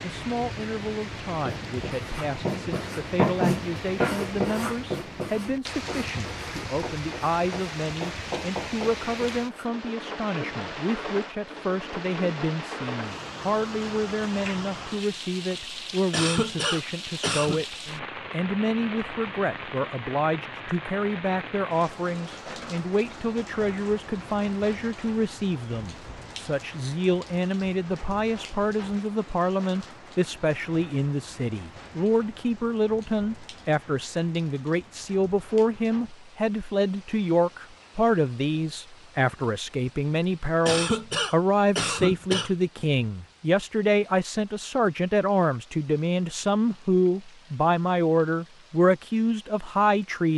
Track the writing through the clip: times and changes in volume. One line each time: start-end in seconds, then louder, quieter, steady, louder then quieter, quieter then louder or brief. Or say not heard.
1.4-9.7 quieter then louder.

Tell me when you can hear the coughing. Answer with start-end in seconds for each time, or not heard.
16.1-17.6, 40.6-42.5.